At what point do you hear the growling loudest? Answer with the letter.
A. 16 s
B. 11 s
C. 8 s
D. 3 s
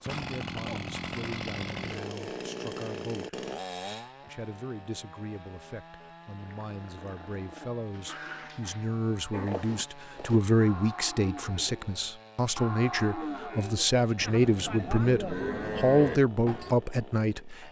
C.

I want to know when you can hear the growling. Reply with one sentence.
The growling can be heard from 6.7 to 8.8 s.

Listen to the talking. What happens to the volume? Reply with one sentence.
The volume of the talking goes up.